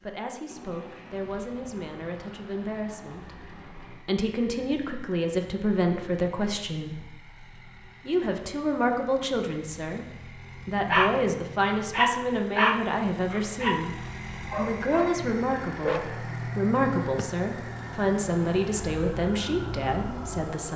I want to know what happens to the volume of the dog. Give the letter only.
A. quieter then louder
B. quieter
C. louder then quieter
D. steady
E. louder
B.